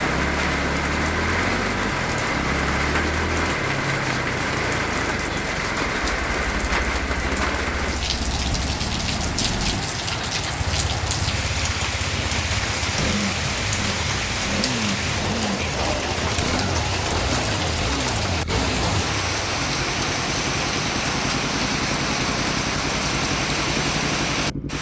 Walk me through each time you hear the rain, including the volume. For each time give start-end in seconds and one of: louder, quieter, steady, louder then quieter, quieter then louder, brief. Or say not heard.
0.0-24.7 steady.